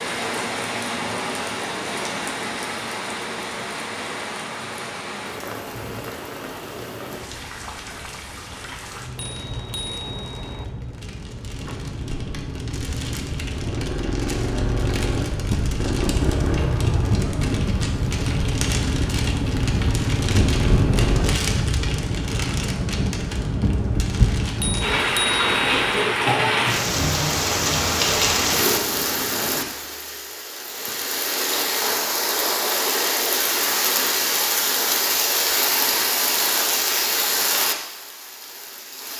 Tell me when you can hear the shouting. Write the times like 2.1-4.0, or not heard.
not heard.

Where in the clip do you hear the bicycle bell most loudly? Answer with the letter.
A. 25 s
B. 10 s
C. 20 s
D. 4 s
A.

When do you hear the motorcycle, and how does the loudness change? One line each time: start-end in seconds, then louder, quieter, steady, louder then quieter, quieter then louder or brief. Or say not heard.
11.5-21.4 louder.